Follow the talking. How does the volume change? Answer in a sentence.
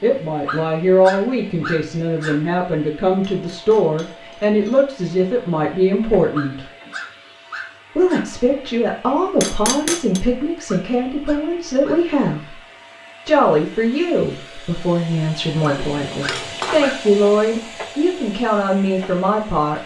The volume of the talking stays about the same.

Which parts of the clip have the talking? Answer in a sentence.
You can hear the talking from 0.0 to 6.7 s, from 8.0 to 12.6 s and from 13.2 to 19.8 s.